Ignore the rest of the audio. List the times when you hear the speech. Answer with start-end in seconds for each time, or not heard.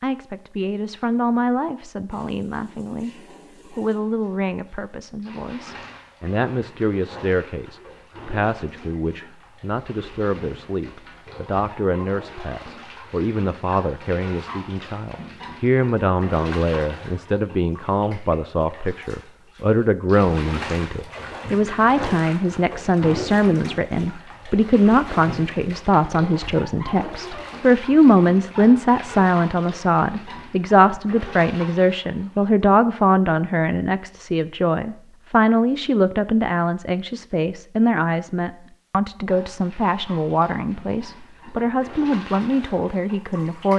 0.0-43.7.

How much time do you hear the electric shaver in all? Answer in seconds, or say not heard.
not heard.